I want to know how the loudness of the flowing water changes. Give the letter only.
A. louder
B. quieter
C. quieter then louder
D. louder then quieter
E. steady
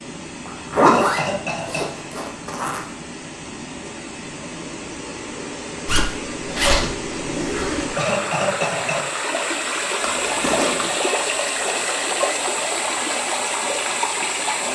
A.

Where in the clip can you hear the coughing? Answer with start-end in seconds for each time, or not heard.
0.8-2.1, 8.0-9.2.